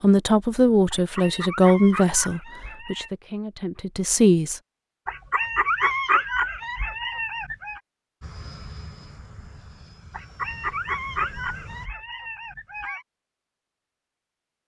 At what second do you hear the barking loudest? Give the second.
6 s.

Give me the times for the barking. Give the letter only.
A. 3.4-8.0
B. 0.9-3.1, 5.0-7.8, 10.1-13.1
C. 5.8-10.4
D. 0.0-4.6
B.